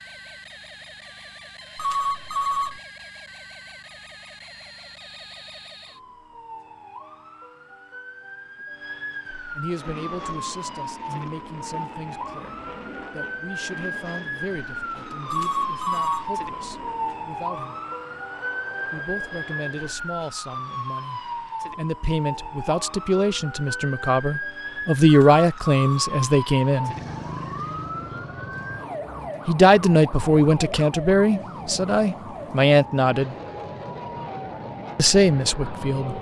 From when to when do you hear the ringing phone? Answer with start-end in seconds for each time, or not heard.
1.8-2.8, 15.2-16.3, 25.1-25.9.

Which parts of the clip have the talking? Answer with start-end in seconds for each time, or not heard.
9.6-17.8, 18.9-26.9, 29.4-33.4, 35.0-36.1.